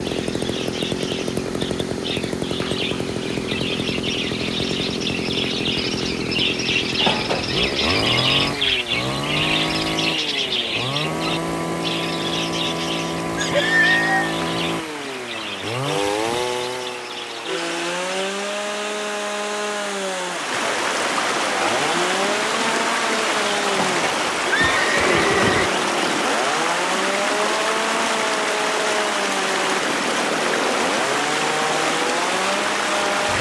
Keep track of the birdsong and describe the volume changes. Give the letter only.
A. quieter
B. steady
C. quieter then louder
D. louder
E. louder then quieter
E.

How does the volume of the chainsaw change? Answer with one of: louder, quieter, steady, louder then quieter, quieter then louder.
steady.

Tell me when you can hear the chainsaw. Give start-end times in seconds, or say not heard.
0.0-33.3.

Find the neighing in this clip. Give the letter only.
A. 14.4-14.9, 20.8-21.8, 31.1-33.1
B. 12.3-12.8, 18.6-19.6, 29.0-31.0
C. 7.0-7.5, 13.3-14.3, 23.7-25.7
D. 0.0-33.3
C.